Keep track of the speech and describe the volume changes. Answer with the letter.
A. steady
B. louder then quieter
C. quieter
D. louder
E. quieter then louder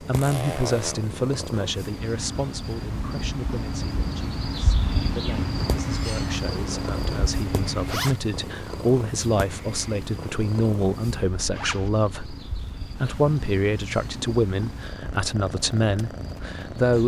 E.